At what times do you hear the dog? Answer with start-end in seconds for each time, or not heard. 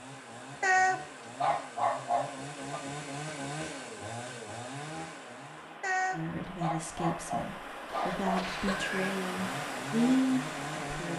0.6-2.8, 5.8-8.8.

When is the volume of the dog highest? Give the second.
1 s.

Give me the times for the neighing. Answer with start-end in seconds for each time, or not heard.
7.8-9.2.